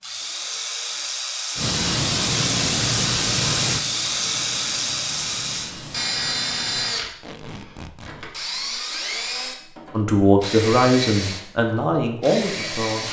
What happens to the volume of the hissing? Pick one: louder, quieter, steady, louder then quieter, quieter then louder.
quieter.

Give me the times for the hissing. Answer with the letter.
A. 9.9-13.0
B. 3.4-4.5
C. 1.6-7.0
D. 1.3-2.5
C.